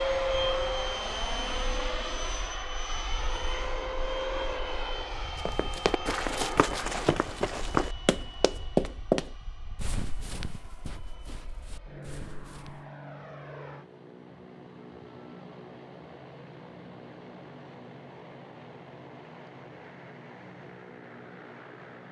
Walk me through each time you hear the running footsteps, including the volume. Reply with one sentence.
The running footsteps can be heard from 5.3 to 12.8 s, getting louder then quieter.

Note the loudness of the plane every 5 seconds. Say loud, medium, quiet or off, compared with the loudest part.
loud, medium, quiet, quiet, quiet.